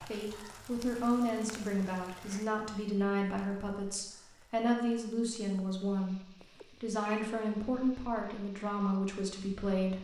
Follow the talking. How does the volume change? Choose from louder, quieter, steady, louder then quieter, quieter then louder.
steady.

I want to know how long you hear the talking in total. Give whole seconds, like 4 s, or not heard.
10 s.